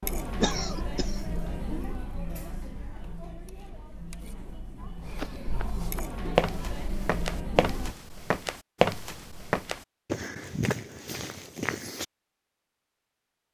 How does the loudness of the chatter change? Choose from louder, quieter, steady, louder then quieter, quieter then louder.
quieter then louder.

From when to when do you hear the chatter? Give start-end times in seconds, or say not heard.
0.0-8.0.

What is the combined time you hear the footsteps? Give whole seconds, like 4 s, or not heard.
7 s.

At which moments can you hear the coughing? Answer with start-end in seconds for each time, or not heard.
0.4-1.2.